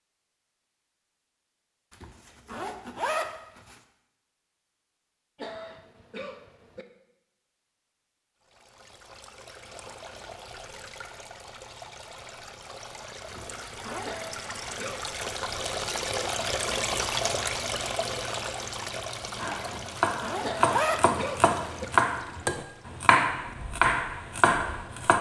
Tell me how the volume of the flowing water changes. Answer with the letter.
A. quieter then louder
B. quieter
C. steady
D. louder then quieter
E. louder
D.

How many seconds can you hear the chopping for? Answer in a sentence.
The chopping can be heard for 6 seconds in total.